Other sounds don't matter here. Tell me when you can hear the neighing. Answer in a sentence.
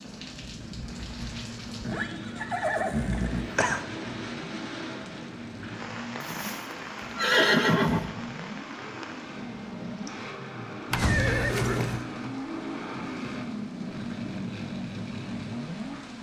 The neighing can be heard from 1.9 to 3.8 s, from 6.2 to 8.1 s and from 10.9 to 12.1 s.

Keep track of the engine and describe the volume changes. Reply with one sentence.
The volume of the engine goes up.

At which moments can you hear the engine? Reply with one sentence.
The engine can be heard from 0.0 to 16.1 s.